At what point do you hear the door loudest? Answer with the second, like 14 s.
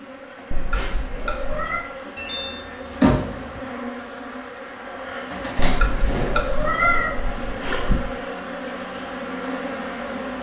3 s.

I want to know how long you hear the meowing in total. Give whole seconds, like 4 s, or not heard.
4 s.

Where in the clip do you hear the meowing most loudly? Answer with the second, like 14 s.
7 s.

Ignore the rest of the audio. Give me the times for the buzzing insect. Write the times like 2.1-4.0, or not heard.
0.0-10.3.